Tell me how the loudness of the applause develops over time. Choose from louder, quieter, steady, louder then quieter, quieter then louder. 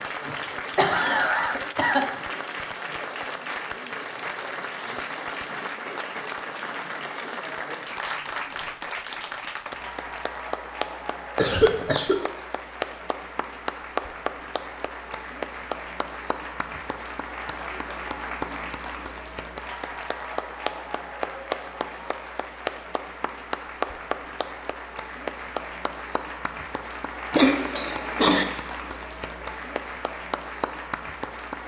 steady.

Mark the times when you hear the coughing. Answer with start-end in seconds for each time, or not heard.
0.2-2.1, 11.3-12.2, 27.3-28.4.